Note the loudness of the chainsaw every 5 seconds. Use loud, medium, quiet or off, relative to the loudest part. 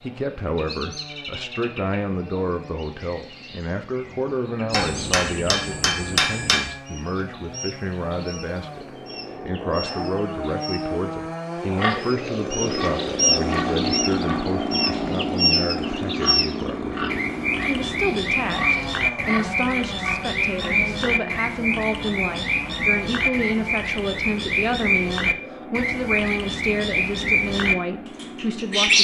quiet, medium, loud, loud, medium, medium.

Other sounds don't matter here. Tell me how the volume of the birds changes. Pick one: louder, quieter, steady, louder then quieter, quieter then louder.
louder.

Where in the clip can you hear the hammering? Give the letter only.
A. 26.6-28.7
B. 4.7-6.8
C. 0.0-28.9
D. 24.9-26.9
B.